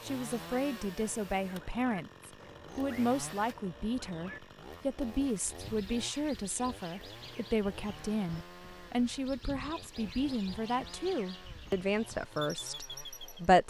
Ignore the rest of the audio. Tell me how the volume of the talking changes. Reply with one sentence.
The volume of the talking stays about the same.